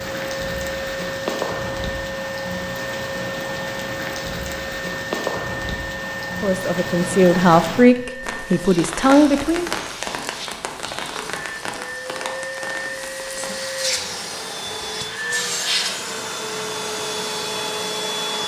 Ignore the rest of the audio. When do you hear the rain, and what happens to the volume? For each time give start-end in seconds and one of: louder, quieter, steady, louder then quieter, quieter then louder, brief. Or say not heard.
0.0-18.4 quieter.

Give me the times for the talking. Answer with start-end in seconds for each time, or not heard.
6.4-9.7.